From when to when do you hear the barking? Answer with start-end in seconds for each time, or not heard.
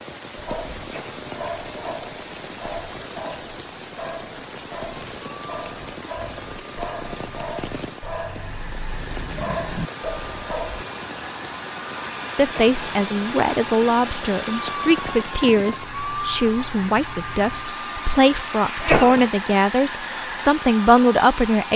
0.3-10.8.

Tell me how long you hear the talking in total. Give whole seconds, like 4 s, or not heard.
9 s.